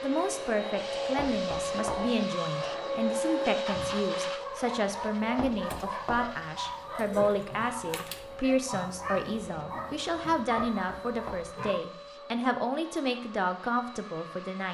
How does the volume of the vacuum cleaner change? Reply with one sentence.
The volume of the vacuum cleaner goes down.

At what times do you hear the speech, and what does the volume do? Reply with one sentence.
The speech can be heard from 0.0 to 14.6 s, at a steady volume.